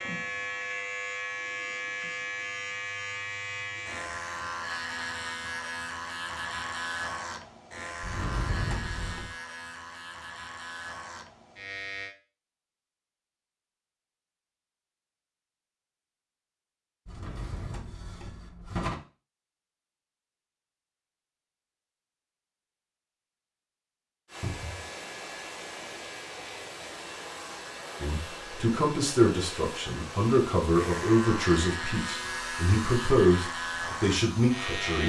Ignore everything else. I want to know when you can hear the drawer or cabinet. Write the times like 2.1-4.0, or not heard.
8.0-9.3, 17.1-18.9, 24.4-24.9.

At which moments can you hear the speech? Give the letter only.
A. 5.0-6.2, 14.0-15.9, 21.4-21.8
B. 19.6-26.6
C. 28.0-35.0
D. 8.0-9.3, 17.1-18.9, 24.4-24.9
C.